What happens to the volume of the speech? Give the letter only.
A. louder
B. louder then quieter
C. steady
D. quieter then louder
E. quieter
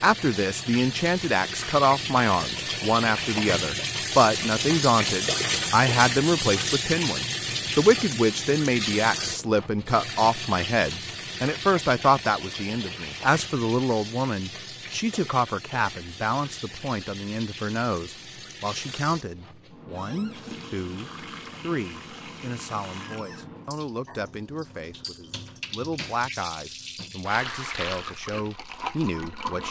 E.